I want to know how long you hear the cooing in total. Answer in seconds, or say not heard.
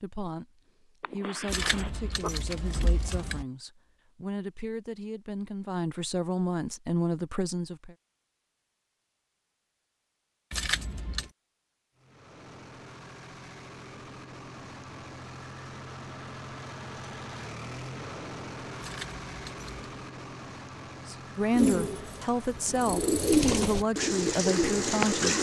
4 s.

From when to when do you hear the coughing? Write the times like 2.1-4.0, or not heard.
1.0-2.4.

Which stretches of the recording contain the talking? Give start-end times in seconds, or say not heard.
0.0-8.0, 21.1-25.3.